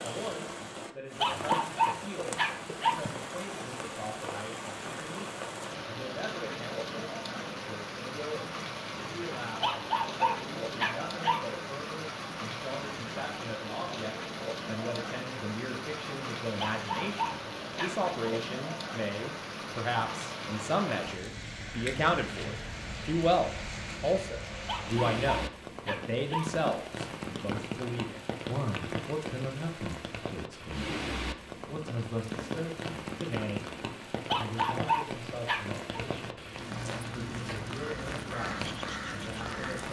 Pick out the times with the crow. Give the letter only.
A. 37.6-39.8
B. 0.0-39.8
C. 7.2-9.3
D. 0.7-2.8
A.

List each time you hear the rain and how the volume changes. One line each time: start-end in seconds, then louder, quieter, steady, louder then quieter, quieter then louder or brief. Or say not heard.
0.0-39.8 steady.